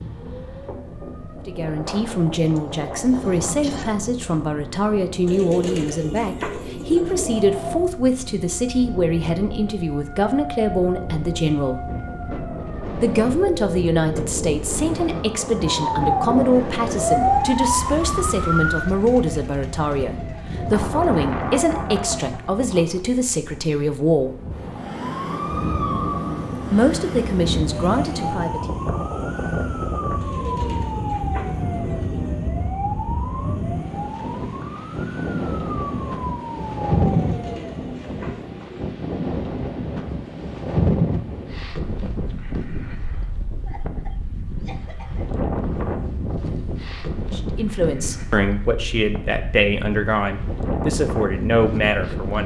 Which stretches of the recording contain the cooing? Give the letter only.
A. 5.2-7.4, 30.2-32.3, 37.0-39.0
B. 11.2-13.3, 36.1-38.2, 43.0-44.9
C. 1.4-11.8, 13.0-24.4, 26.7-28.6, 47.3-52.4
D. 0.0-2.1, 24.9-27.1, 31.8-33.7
A.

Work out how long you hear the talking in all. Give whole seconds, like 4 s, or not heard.
29 s.